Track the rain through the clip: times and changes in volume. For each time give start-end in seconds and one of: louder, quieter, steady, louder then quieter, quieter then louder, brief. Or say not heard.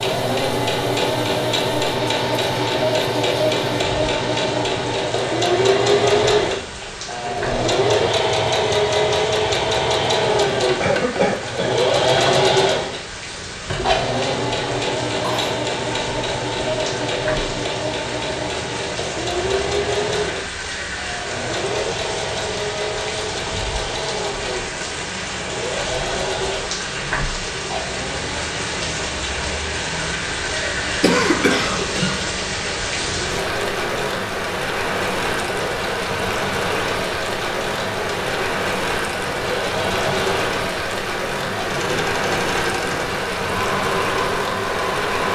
0.1-45.2 louder.